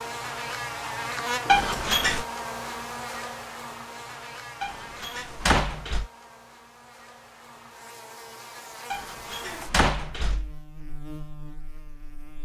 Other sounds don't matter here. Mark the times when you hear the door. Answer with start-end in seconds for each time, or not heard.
1.4-2.2, 4.6-6.1, 8.9-10.6.